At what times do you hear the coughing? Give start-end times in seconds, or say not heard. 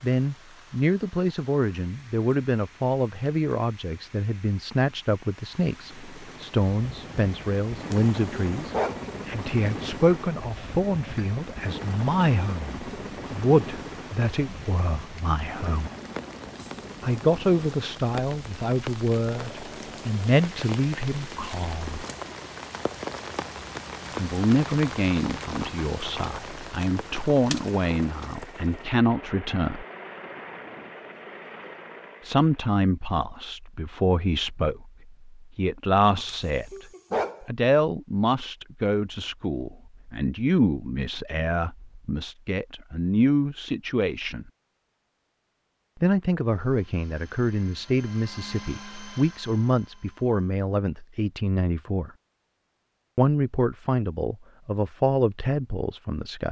not heard.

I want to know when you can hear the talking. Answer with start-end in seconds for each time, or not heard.
0.0-15.9, 17.0-22.1, 24.1-29.9, 32.2-44.5, 46.0-52.1, 53.1-56.4.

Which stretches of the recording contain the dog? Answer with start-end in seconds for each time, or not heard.
7.9-9.1, 36.2-37.5.